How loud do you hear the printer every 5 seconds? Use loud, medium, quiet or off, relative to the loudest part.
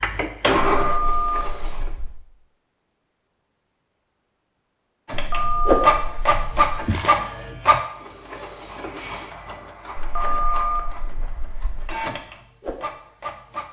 loud, loud, medium.